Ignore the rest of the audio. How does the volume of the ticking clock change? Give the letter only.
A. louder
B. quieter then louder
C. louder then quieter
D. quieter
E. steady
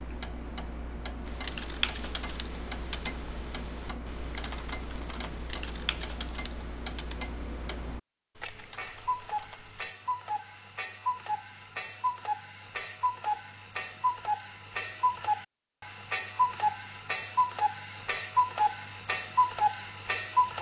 A.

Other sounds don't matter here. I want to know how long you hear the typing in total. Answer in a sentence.
You can hear the typing for 9 seconds altogether.